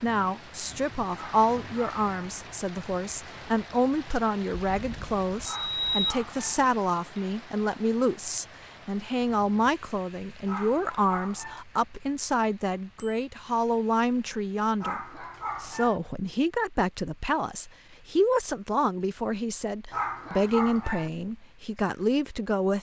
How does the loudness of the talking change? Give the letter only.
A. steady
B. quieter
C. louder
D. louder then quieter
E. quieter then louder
A.